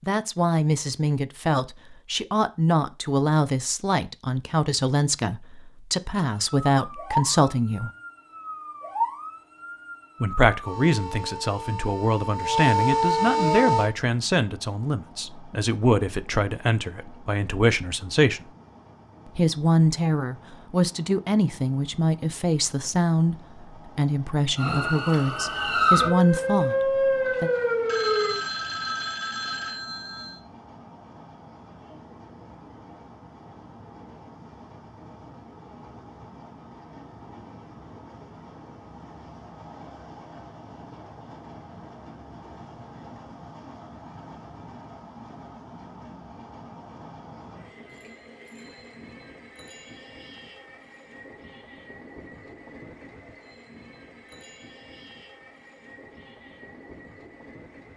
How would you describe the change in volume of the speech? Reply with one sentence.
The volume of the speech stays about the same.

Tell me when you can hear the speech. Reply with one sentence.
You can hear the speech from 0.0 to 7.9 s, from 10.2 to 18.4 s and from 19.4 to 27.5 s.